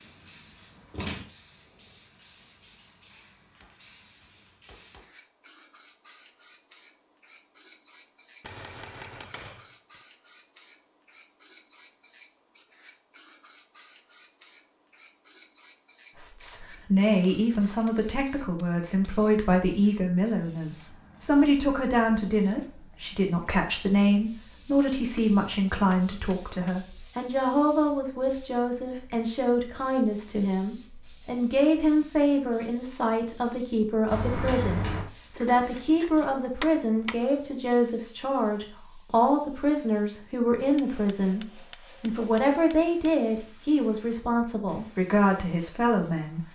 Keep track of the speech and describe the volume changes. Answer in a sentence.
The volume of the speech stays about the same.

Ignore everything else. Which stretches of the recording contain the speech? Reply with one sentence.
The speech can be heard from 16.1 to 46.4 s.